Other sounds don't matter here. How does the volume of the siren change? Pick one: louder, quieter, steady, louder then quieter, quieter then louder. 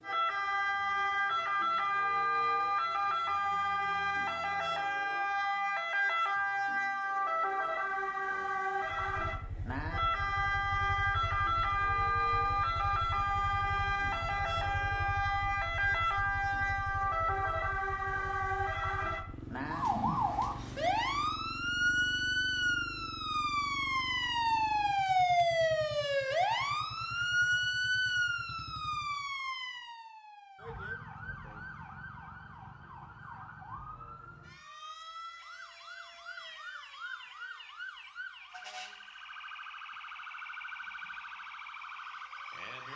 quieter.